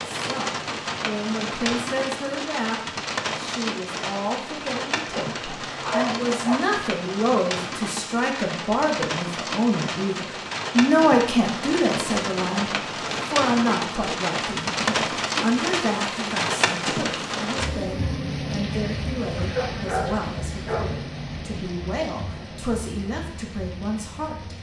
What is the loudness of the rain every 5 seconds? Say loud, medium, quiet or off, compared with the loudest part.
loud, loud, loud, loud, medium.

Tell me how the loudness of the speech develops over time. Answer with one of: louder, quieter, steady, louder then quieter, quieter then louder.
louder then quieter.